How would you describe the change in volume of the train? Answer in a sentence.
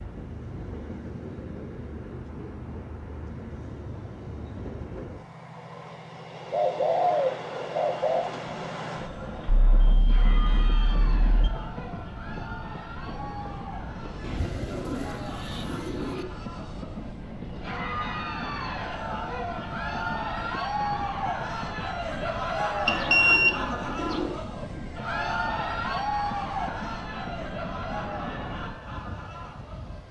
The volume of the train stays about the same.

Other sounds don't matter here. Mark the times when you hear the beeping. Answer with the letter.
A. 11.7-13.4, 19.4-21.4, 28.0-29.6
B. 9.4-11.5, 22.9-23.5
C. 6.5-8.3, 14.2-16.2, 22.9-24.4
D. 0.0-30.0
B.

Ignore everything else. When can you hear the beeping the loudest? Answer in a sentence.
The loudest moment of the beeping is at 23 seconds.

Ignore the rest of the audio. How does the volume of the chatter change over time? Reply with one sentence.
The volume of the chatter goes up.